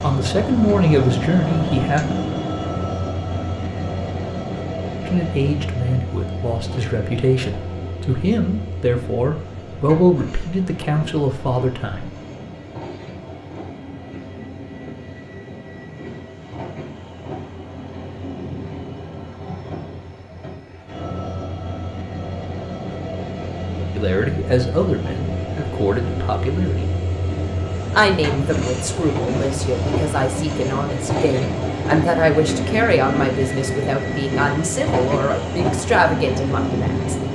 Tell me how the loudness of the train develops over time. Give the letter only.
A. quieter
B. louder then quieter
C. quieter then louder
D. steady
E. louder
C.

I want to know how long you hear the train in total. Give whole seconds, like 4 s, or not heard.
37 s.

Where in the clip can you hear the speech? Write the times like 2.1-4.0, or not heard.
0.0-2.1, 5.0-12.1, 23.9-26.9, 27.9-37.1.